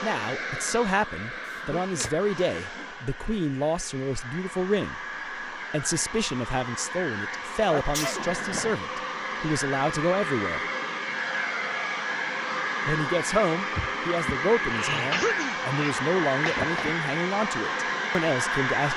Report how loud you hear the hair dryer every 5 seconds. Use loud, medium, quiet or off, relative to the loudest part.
medium, medium, loud, loud.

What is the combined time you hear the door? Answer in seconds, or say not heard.
2 s.